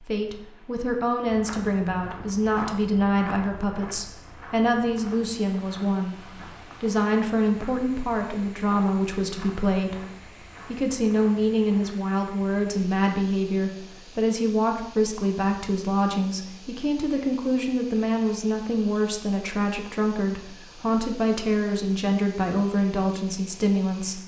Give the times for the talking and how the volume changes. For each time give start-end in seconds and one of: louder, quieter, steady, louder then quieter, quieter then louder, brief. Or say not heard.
0.0-24.2 steady.